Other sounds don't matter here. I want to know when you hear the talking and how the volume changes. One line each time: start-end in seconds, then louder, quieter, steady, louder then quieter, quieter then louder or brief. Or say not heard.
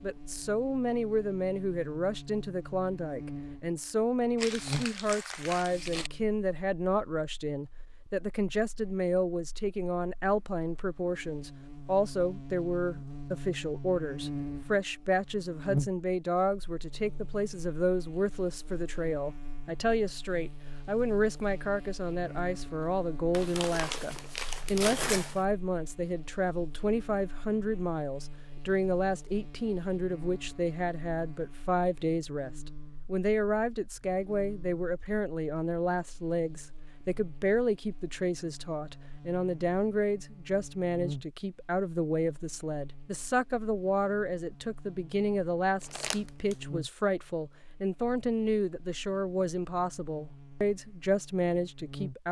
0.0-52.2 steady.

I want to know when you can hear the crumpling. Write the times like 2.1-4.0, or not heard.
4.3-6.1, 23.3-25.4, 45.8-46.5.